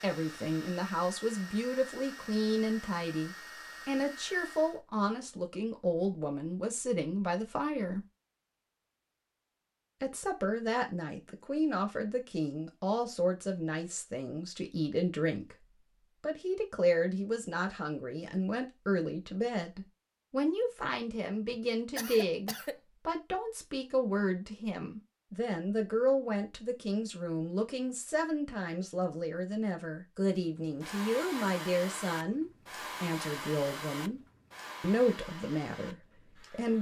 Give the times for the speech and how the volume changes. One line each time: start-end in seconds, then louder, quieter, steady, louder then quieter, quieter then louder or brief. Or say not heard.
0.0-8.0 steady
10.0-34.2 steady
34.8-36.7 brief.